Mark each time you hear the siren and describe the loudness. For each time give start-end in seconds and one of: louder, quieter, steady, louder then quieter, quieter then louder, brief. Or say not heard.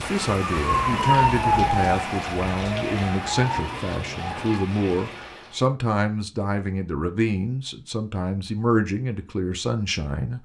0.0-4.7 quieter.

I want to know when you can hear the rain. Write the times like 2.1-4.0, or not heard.
0.0-5.7.